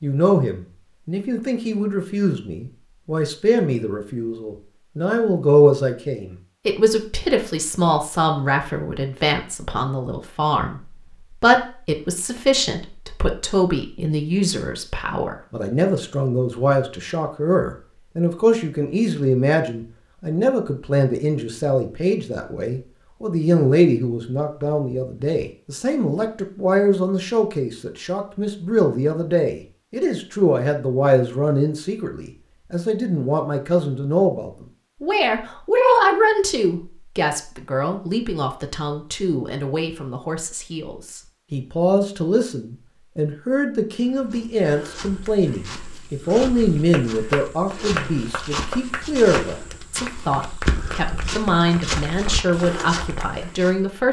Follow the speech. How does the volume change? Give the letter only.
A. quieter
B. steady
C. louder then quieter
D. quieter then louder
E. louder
B.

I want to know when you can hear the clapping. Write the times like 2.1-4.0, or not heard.
46.6-53.3.